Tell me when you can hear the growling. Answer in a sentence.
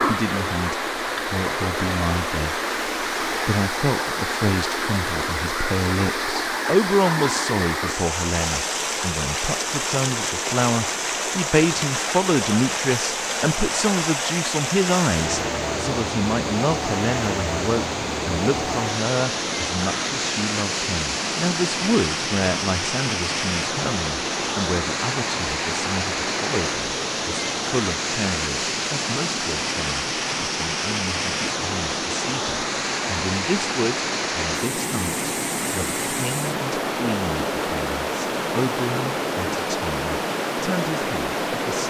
You can't hear the growling here.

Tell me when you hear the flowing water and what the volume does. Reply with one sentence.
You can hear the flowing water from 0.0 to 41.8 s, at a steady volume.